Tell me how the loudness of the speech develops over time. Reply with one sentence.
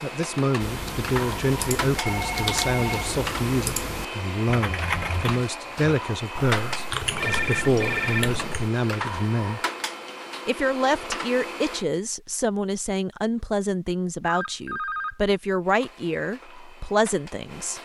The volume of the speech stays about the same.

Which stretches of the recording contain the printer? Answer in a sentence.
The printer can be heard from 0.0 to 11.8 s and from 15.6 to 17.7 s.